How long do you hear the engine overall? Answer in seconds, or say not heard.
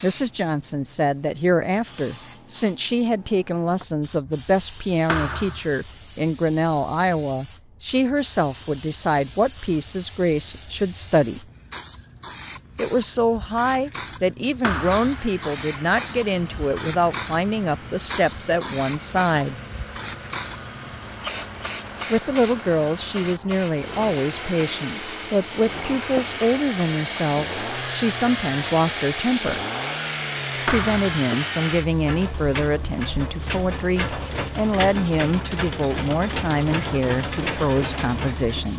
24 s.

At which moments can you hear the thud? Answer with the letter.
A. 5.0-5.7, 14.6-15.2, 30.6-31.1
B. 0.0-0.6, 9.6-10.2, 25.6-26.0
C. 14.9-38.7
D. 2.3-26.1
A.